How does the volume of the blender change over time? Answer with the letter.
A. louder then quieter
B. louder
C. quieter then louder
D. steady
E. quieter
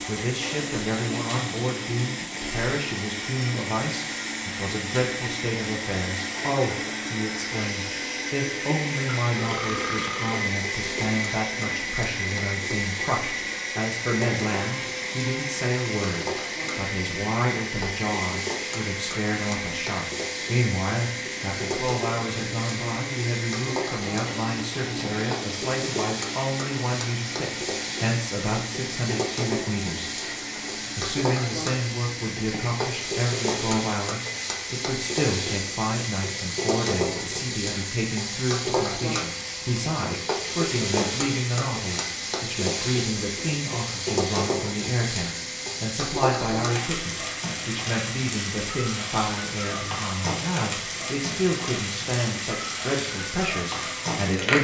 E.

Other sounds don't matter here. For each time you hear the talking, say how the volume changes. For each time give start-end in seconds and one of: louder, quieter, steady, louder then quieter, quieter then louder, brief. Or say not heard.
0.1-54.6 steady.